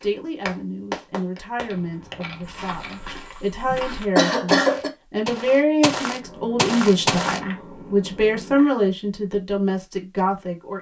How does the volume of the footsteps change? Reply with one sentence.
The loudness of the footsteps goes up.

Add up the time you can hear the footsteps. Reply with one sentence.
The footsteps can be heard for 5 seconds in total.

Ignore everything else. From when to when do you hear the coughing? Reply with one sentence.
The coughing can be heard from 3.6 to 4.9 s.